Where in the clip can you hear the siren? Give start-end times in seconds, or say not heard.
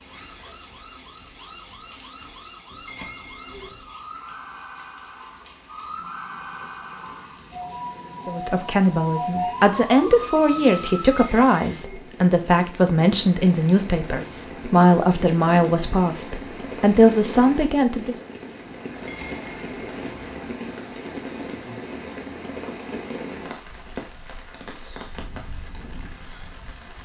0.0-11.3.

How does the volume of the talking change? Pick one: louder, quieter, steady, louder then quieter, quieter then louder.
steady.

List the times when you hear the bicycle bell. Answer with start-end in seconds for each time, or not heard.
2.9-3.7, 11.2-12.0, 19.1-19.9.